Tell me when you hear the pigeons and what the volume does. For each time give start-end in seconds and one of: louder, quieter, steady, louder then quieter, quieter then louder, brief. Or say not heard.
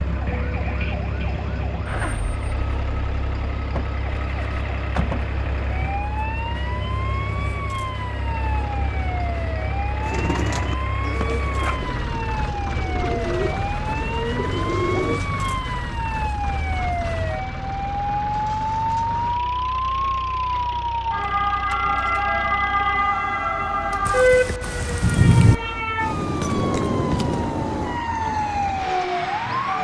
10.0-15.2 quieter then louder.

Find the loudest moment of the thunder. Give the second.
25 s.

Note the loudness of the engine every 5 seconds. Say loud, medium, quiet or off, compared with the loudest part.
loud, loud, loud, loud, medium, loud.